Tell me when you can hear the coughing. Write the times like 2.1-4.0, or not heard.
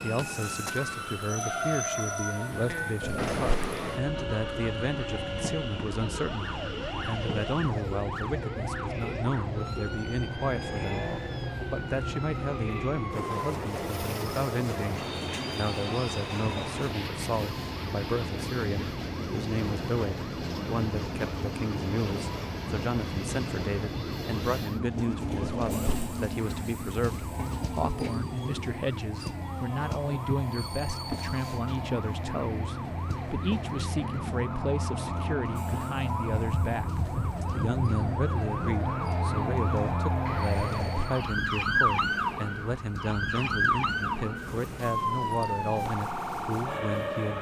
3.0-3.8, 25.4-26.1, 40.5-41.1.